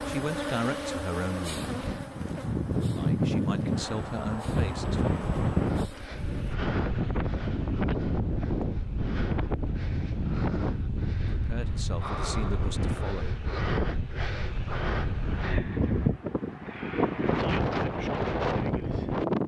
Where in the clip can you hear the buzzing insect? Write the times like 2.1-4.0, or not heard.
0.0-6.5.